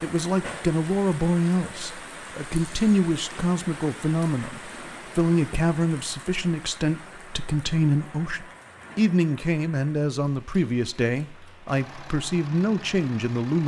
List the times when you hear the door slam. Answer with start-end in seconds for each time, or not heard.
not heard.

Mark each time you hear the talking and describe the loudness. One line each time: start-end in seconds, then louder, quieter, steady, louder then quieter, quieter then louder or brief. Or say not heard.
0.0-13.6 steady.